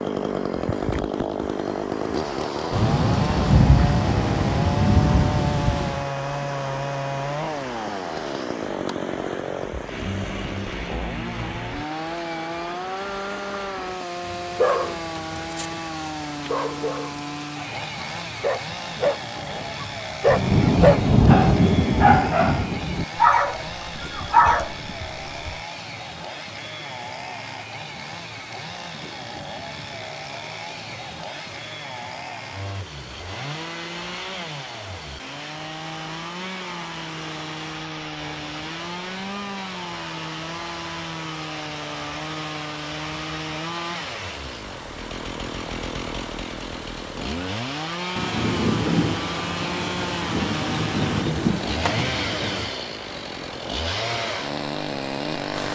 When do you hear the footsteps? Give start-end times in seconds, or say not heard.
not heard.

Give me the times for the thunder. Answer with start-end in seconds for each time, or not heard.
2.7-6.0, 20.2-23.1, 48.1-52.7.